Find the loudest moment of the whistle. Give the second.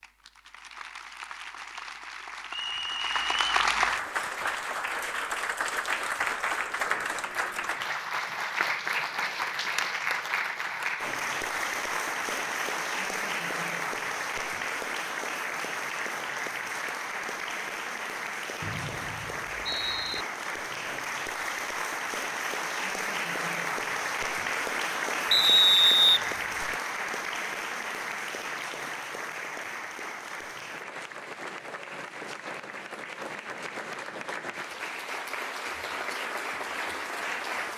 26 s.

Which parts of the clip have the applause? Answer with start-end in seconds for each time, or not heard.
0.0-37.7.